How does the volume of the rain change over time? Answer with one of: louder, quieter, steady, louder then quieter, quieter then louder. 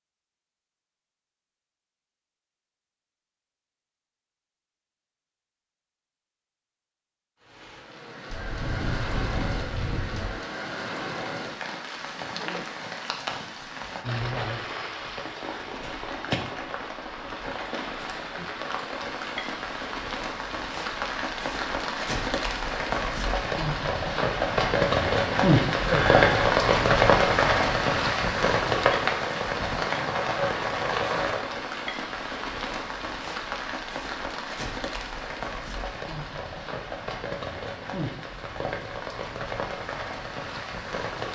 louder then quieter.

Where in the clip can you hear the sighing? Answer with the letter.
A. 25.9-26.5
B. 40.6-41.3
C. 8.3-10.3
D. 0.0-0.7
A.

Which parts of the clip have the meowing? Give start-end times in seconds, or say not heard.
8.3-10.3.